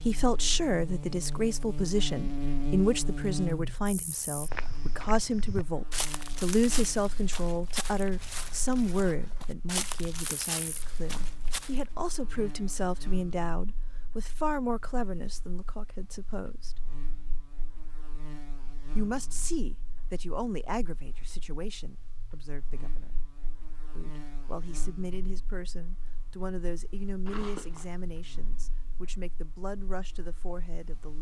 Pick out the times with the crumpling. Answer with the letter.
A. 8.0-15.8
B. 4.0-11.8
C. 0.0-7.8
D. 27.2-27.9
D.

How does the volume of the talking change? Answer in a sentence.
The volume of the talking goes down.